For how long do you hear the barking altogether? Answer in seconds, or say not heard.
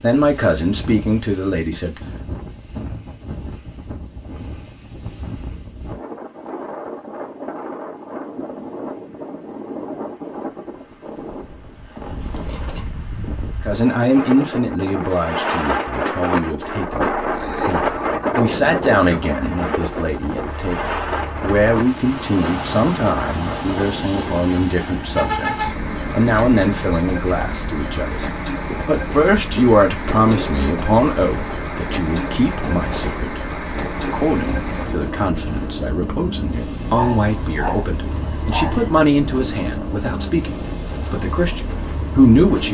2 s.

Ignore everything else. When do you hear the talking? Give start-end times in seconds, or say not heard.
0.0-2.4, 13.6-42.6.